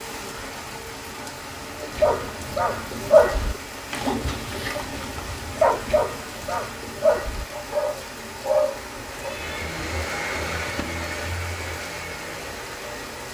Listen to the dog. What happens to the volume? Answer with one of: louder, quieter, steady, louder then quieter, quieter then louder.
quieter then louder.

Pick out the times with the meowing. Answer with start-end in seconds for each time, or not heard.
8.8-9.7.